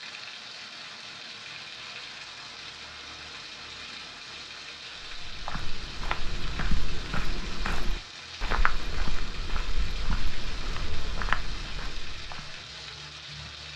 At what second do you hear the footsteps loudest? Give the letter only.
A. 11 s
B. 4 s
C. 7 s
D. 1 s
A.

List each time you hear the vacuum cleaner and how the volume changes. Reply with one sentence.
You can't hear the vacuum cleaner here.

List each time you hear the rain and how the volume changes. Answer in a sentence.
The rain can be heard from 0.0 to 13.7 s, at a steady volume.